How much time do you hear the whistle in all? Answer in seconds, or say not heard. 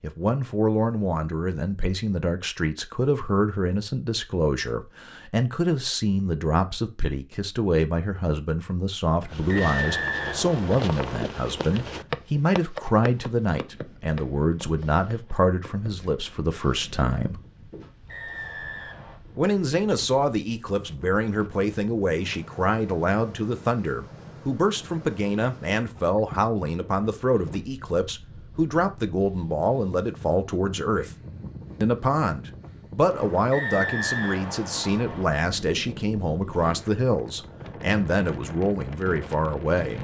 5 s.